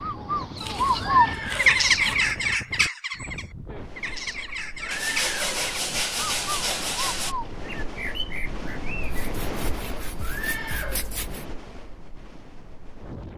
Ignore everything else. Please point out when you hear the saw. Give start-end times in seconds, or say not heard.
0.6-2.4, 4.9-7.3, 9.0-11.4.